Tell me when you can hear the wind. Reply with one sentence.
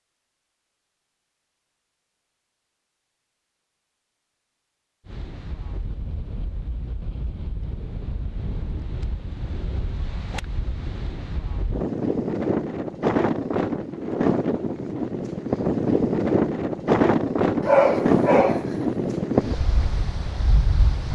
You can hear the wind from 5.0 to 21.1 s.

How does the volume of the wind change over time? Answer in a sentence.
The volume of the wind goes up.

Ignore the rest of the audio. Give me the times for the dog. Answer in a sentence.
You can hear the dog from 17.6 to 18.7 s.